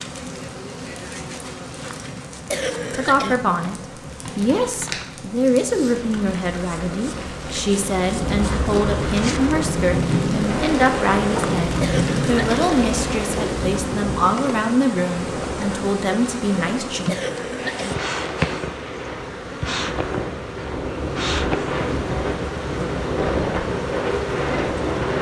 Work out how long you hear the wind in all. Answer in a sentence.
You can hear the wind for 17 seconds altogether.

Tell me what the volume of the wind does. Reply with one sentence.
The loudness of the wind goes down, then up.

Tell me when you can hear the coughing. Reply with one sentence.
You can hear the coughing from 2.5 to 3.4 s, from 11.8 to 12.7 s and from 17.1 to 17.9 s.